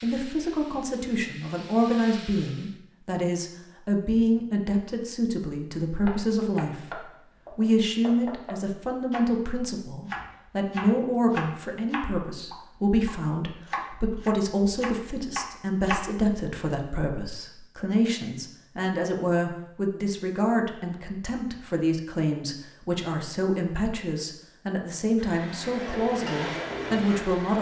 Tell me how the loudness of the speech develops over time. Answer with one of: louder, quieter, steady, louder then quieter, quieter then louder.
steady.